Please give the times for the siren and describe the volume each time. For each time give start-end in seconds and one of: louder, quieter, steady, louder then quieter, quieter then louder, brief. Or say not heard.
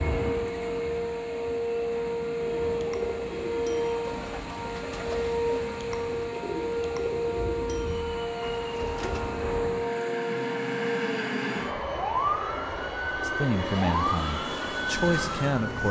0.0-15.8 steady.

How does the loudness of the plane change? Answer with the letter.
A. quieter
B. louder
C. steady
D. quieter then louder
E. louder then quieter
B.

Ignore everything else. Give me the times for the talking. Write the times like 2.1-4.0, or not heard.
13.2-15.8.